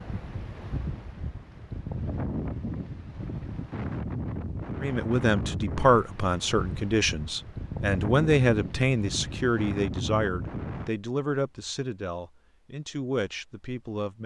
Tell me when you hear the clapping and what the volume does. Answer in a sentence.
You can't hear the clapping here.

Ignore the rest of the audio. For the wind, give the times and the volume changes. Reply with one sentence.
The wind can be heard from 0.0 to 10.9 s, at a steady volume.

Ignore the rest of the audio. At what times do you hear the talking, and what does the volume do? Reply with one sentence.
You can hear the talking from 4.8 to 14.2 s, getting quieter.